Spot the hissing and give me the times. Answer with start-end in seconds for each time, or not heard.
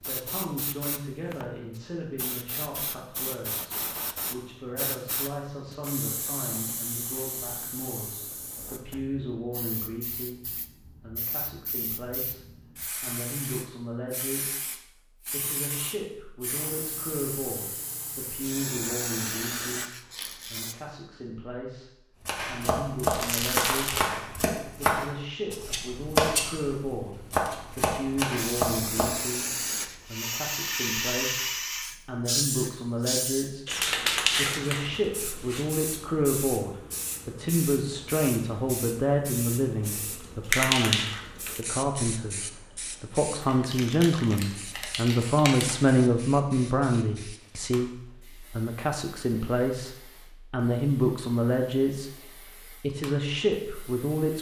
0.0-20.8, 28.4-54.3.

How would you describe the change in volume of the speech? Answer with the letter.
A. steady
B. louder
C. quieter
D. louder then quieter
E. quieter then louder
B.